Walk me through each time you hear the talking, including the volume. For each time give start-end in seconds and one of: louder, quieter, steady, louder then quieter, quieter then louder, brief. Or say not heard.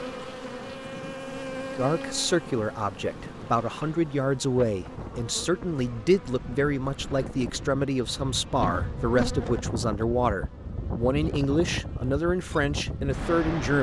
1.8-13.7 steady.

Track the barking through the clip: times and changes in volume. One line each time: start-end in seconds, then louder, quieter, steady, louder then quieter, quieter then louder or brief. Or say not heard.
not heard.